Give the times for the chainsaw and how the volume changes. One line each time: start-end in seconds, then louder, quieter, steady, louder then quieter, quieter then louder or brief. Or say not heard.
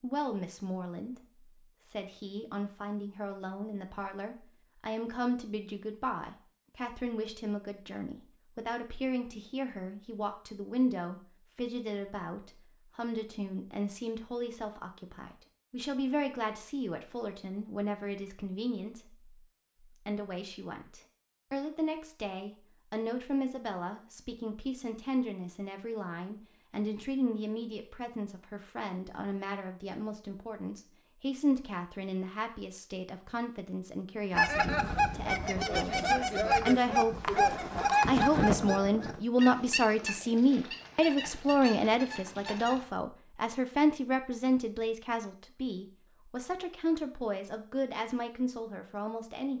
not heard.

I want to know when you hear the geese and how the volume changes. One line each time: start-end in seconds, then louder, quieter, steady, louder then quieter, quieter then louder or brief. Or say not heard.
34.3-42.9 quieter.